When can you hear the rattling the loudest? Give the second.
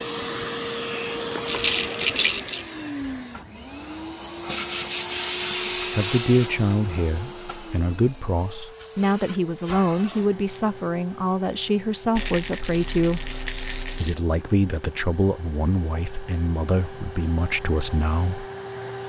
2 s.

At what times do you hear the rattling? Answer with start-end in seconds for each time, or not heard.
1.4-2.7, 12.2-14.2.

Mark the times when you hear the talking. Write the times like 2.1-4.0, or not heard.
5.9-13.3, 13.9-18.4.